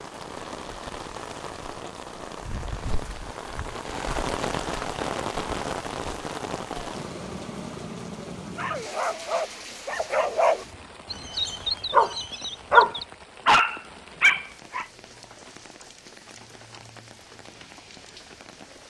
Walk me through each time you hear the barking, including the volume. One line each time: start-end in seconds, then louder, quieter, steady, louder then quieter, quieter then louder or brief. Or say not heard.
8.6-14.8 louder.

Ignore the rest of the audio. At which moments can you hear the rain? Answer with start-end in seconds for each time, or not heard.
0.0-18.8.